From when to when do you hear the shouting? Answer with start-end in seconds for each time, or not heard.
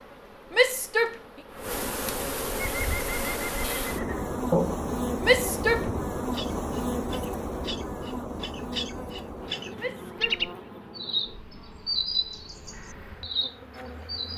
0.5-1.2, 5.2-5.9, 9.8-10.4.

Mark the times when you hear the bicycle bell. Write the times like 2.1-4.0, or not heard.
not heard.